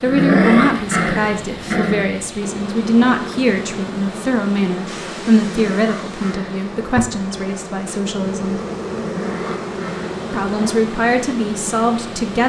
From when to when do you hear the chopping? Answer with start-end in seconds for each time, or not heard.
not heard.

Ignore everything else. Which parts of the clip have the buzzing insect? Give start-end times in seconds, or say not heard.
2.4-12.4.